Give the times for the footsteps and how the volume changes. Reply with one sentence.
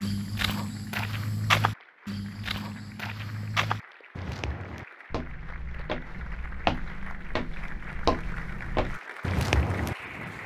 You can hear the footsteps from 0.0 to 9.9 s, getting quieter then louder.